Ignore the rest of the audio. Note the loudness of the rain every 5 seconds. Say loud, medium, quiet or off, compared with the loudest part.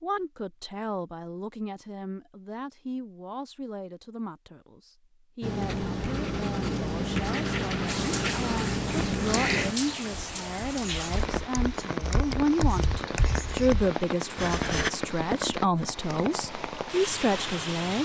off, loud, loud, loud.